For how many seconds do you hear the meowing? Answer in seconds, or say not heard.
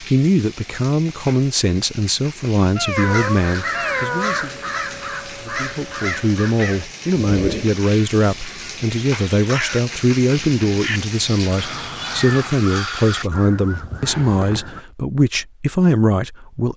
3 s.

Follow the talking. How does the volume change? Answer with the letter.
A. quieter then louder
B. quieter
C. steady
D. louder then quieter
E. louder
C.